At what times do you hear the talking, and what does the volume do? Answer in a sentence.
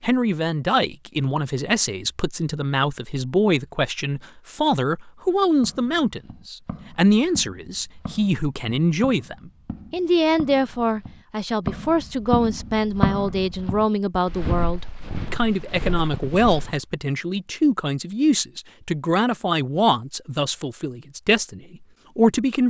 The talking can be heard from 0.0 to 22.6 s, at a steady volume.